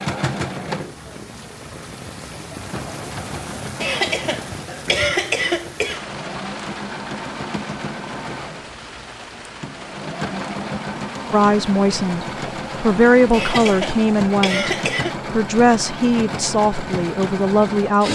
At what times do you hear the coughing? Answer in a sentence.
The coughing can be heard from 3.8 to 6.0 s and from 13.3 to 15.2 s.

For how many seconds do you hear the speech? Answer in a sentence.
The speech can be heard for 7 seconds in total.